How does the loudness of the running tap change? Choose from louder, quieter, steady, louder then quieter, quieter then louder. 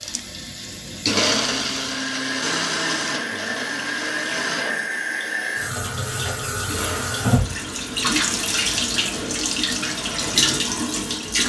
louder.